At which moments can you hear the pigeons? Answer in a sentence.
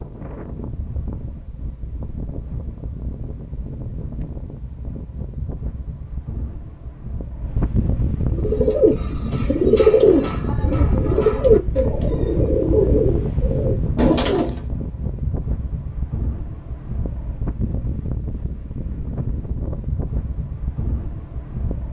The pigeons can be heard from 8.2 to 14.6 s.